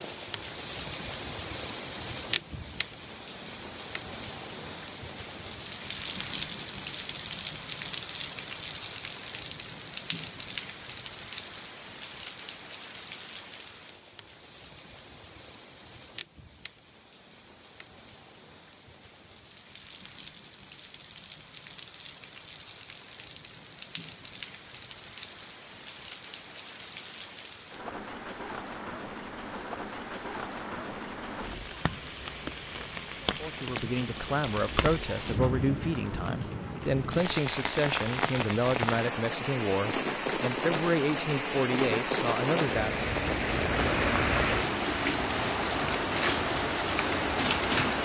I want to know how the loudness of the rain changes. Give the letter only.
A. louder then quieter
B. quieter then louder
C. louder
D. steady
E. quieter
B.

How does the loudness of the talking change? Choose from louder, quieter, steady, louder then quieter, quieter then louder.
steady.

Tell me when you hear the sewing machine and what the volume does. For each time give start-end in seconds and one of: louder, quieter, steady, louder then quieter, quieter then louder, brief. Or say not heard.
not heard.